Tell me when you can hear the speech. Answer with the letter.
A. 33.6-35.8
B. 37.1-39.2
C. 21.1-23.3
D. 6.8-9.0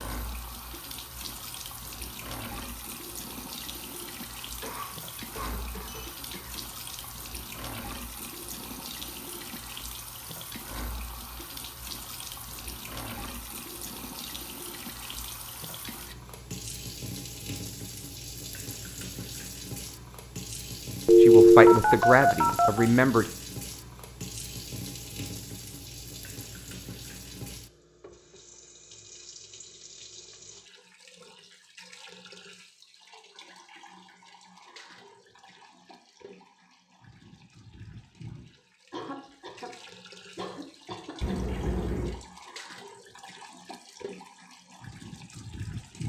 C.